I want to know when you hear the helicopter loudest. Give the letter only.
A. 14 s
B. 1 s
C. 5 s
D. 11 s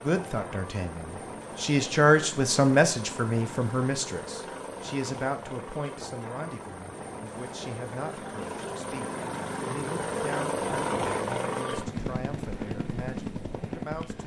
D.